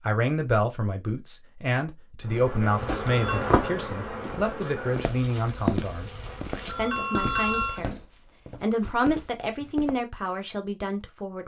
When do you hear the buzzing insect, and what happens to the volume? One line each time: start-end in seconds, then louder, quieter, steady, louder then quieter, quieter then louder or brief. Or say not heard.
2.2-8.0 quieter.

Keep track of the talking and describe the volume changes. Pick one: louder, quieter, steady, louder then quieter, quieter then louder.
steady.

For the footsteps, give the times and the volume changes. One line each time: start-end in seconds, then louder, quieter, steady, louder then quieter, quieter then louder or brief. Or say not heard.
4.2-9.9 louder then quieter.